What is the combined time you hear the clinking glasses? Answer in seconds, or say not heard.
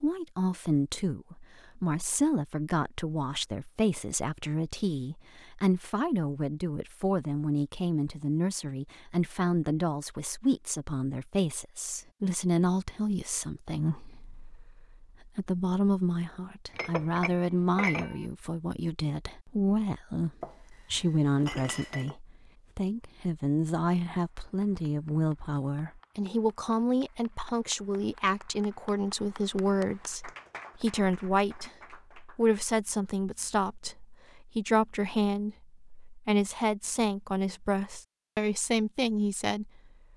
3 s.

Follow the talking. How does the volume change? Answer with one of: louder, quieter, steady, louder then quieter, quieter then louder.
steady.